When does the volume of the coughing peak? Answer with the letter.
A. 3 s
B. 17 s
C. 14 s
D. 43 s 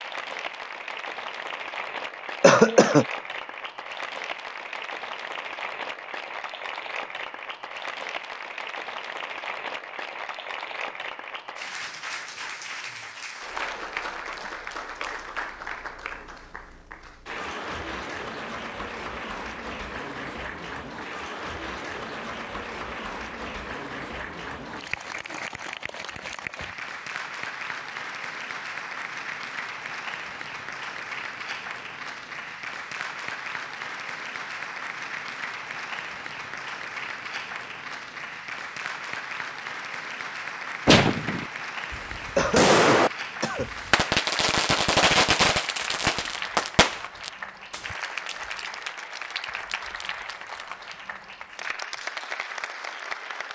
A.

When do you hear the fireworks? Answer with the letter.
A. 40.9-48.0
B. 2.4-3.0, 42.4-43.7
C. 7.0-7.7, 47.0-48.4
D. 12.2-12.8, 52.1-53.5
A.